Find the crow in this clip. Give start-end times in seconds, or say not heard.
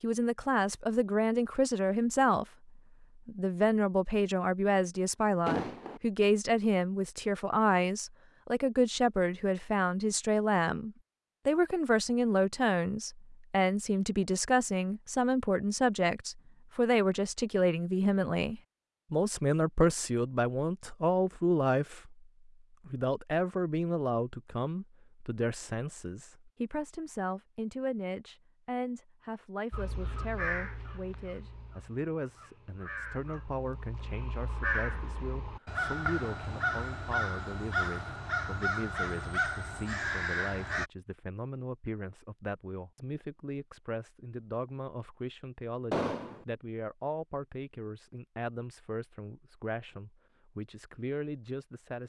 29.7-40.9.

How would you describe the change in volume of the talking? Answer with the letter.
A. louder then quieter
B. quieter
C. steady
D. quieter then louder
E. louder
B.